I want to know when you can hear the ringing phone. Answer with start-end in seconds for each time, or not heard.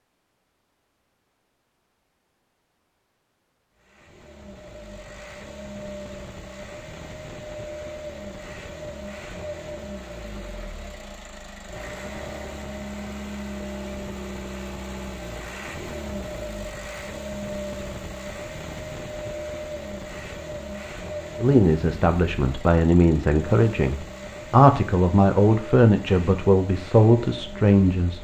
not heard.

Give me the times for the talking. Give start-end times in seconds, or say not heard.
21.4-28.1.